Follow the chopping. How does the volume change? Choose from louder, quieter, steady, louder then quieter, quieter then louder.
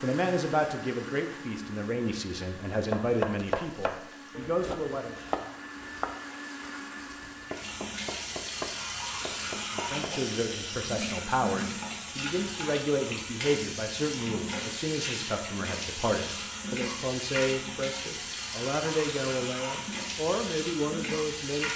quieter.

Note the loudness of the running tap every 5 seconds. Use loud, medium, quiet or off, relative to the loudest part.
quiet, loud, loud, loud, loud.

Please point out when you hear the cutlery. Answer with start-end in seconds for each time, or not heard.
not heard.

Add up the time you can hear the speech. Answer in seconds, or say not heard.
17 s.